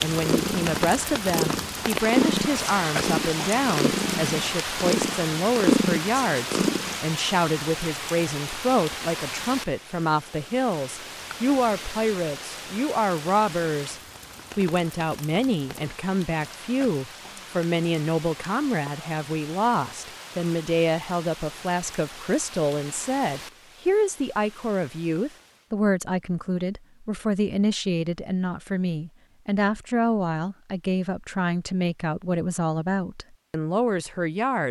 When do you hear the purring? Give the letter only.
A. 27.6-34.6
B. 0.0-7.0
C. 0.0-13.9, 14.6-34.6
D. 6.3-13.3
B.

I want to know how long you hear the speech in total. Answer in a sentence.
You can hear the speech for 34 seconds altogether.